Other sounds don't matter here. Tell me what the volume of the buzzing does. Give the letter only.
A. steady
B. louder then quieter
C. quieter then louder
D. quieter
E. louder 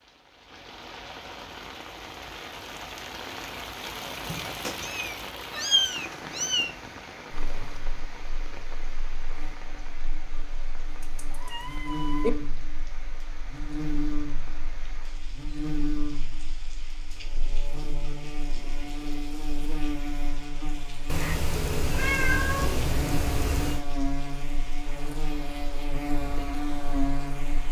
E.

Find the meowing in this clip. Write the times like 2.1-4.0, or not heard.
4.2-6.7, 11.2-12.3, 21.1-23.9.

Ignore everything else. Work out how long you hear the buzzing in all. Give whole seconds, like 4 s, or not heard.
20 s.